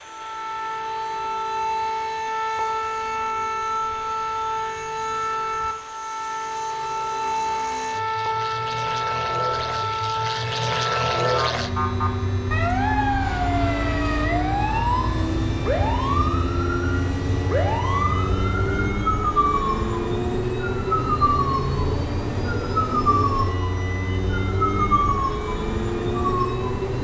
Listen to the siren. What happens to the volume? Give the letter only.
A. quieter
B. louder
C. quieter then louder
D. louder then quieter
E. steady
E.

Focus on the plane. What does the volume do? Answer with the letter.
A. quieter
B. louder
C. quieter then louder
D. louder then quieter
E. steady
B.